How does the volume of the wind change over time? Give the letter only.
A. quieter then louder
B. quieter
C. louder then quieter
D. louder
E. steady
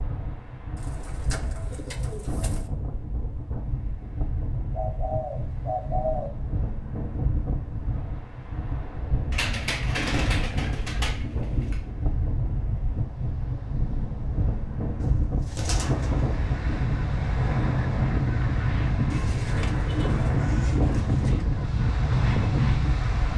D.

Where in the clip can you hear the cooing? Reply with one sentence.
The cooing can be heard from 0.8 to 2.7 s, from 4.7 to 6.3 s, from 9.3 to 11.8 s, from 15.0 to 16.3 s and from 19.1 to 21.4 s.